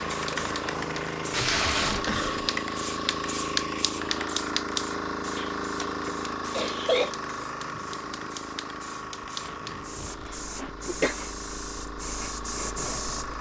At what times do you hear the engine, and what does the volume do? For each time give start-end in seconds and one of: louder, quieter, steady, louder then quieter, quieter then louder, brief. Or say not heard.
0.0-13.3 quieter.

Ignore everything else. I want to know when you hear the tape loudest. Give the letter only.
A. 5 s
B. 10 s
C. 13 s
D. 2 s
D.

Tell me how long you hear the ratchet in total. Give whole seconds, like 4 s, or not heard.
not heard.